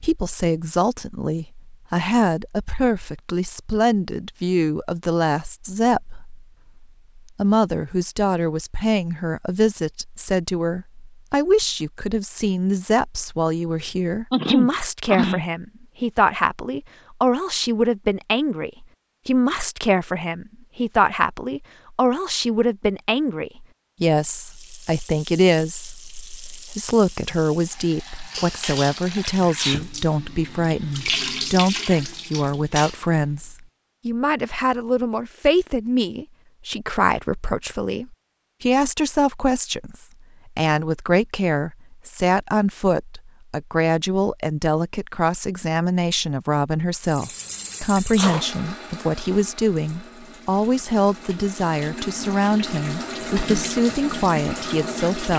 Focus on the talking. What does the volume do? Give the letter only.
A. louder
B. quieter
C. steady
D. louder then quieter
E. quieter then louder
C.